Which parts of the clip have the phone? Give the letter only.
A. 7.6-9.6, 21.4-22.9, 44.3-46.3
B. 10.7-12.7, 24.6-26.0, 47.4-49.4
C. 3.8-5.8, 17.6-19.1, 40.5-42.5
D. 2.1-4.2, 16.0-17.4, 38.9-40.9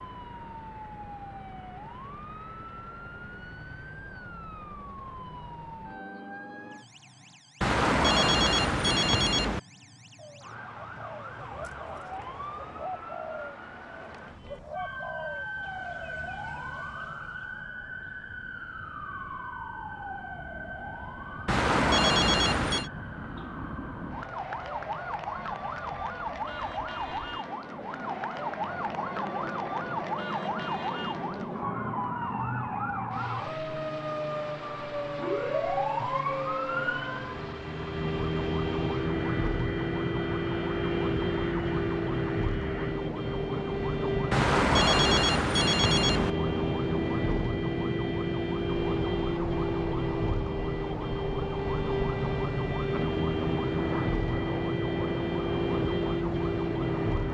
A.